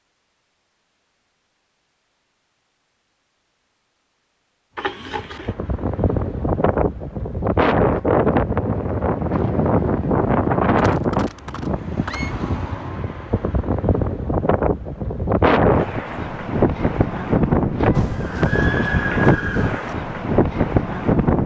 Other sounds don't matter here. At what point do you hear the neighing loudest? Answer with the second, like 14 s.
19 s.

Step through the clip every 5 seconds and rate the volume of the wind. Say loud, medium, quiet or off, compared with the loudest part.
off, loud, loud, loud, loud.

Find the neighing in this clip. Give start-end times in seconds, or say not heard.
4.8-5.5, 10.8-12.3, 17.9-19.9.